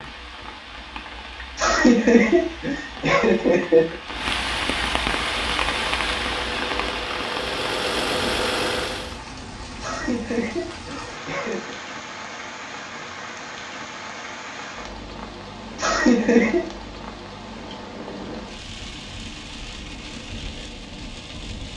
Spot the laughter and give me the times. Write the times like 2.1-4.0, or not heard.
1.6-4.0, 9.8-11.8, 15.8-16.6.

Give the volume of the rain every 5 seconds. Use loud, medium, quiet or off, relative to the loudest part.
loud, loud, medium, medium, medium.